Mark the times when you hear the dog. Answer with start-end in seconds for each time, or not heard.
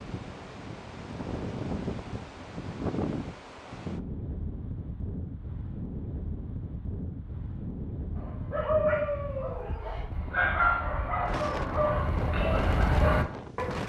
8.2-13.8.